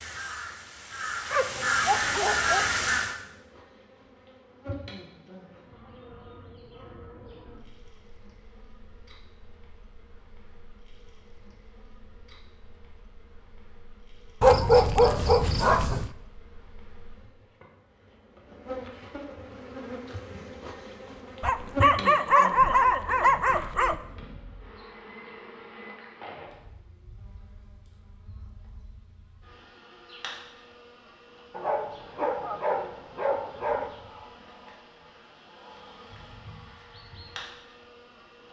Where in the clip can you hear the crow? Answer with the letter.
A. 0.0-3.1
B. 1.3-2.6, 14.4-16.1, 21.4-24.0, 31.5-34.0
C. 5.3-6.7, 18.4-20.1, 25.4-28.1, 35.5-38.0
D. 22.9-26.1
A.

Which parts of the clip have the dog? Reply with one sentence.
The dog can be heard from 1.3 to 2.6 s, from 14.4 to 16.1 s, from 21.4 to 24.0 s and from 31.5 to 34.0 s.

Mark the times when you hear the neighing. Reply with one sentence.
You can't hear the neighing here.